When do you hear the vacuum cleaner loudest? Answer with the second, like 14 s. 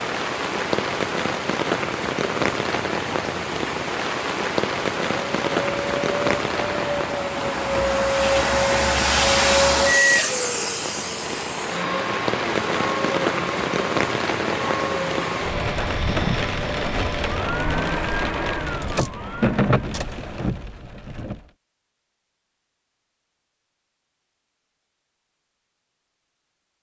10 s.